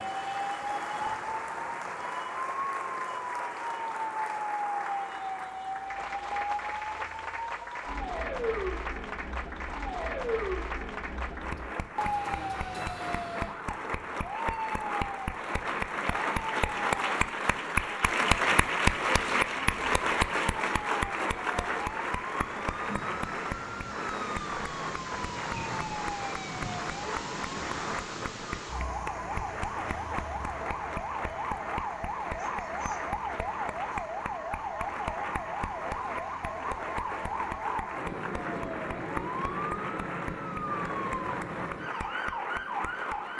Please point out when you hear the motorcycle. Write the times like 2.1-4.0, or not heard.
not heard.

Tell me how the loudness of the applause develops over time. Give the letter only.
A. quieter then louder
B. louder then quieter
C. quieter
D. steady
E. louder
B.